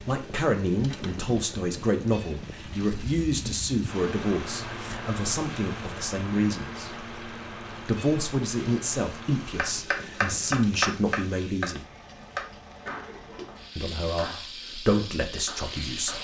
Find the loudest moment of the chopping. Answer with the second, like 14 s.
11 s.